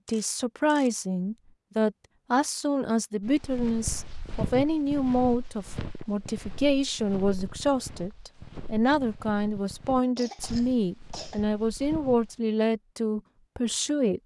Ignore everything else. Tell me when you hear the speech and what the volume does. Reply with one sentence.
The speech can be heard from 0.1 to 14.2 s, at a steady volume.